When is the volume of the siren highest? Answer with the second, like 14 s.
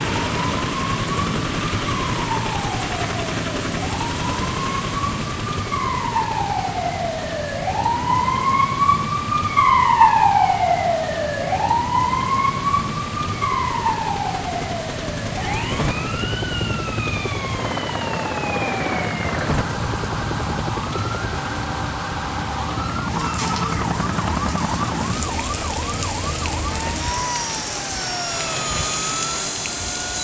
10 s.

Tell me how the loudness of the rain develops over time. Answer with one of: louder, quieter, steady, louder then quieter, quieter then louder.
steady.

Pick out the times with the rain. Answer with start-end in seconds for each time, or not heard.
0.0-30.1.